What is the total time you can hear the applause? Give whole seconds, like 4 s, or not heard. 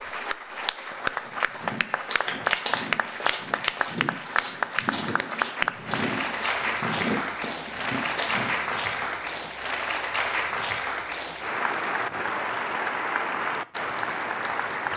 15 s.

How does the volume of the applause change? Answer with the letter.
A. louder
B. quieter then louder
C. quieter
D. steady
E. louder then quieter
D.